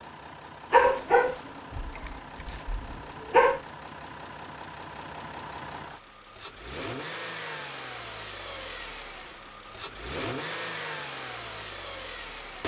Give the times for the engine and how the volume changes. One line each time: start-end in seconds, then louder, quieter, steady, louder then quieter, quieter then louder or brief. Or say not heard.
0.0-12.6 louder.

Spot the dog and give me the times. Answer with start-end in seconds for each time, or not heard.
0.7-3.6.